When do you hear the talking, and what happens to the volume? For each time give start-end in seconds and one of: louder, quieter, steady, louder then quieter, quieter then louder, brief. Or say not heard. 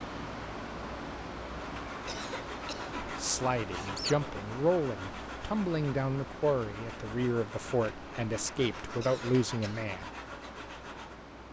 3.0-10.1 steady.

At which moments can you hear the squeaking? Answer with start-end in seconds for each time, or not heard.
3.7-4.2.